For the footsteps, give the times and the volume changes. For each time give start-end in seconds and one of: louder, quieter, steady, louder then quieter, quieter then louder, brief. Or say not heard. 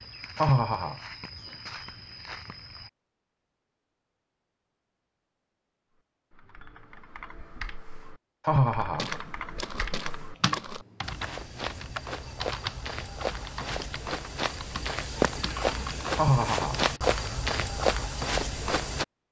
0.0-2.9 brief
8.9-19.1 louder.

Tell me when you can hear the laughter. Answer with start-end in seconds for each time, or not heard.
0.3-0.9, 8.4-9.1, 16.1-16.8.